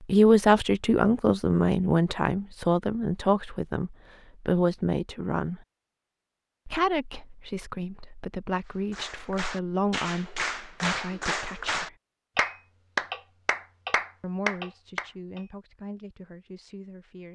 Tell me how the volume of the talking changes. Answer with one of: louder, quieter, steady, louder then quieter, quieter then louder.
quieter.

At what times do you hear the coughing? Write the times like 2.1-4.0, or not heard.
not heard.